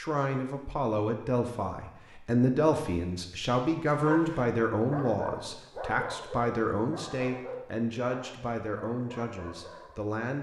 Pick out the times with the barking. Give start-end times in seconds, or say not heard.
3.9-10.2.